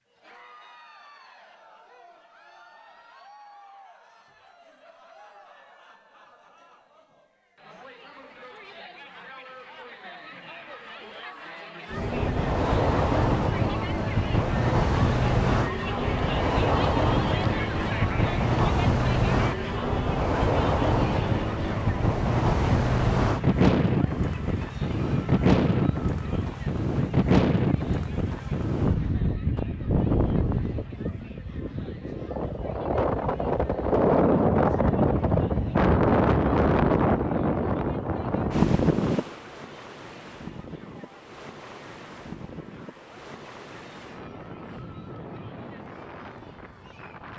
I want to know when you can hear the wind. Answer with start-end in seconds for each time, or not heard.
11.9-47.3.